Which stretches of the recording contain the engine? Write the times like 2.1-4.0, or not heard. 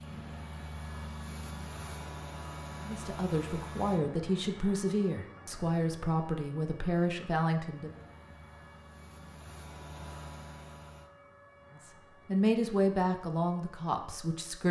0.0-4.0, 7.8-11.1.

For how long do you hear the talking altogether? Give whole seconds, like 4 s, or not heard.
8 s.